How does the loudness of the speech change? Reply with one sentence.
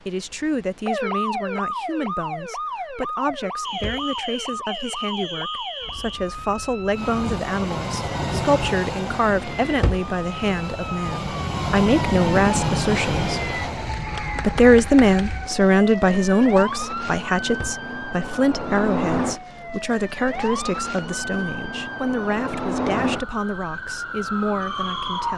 The loudness of the speech goes up, then down.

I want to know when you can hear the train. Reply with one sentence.
You can hear the train from 6.9 to 14.8 s.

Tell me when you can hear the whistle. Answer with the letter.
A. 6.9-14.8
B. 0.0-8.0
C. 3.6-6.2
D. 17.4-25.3
C.